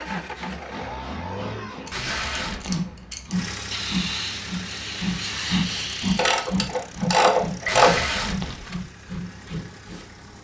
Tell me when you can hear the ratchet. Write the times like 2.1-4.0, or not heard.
1.9-3.4, 6.2-8.1.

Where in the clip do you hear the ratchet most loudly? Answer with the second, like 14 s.
8 s.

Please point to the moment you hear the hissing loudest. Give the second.
6 s.